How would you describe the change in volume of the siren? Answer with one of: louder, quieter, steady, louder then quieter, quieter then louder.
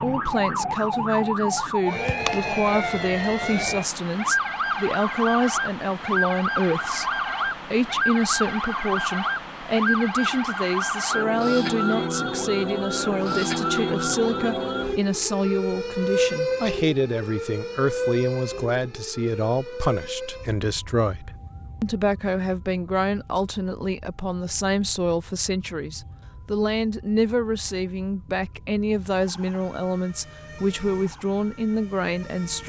quieter.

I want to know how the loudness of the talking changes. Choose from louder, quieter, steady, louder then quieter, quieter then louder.
steady.